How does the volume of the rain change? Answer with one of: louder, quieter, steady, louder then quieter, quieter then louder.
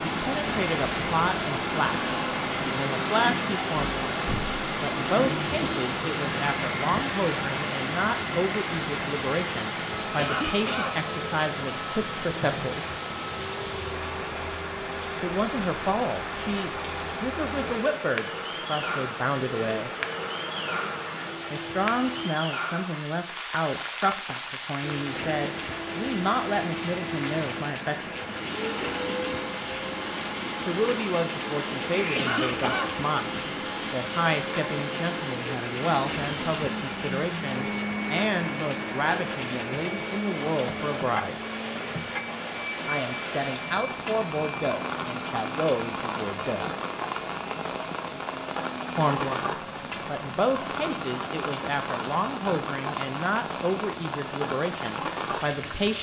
steady.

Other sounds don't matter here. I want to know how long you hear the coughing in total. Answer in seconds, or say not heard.
2 s.